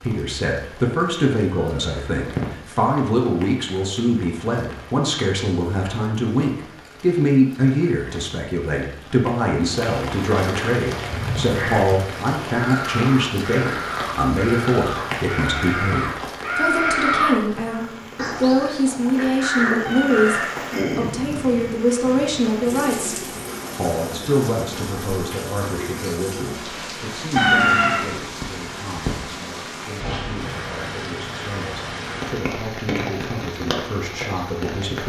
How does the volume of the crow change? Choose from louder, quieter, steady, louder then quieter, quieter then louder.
louder then quieter.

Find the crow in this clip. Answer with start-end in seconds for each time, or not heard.
10.9-20.6.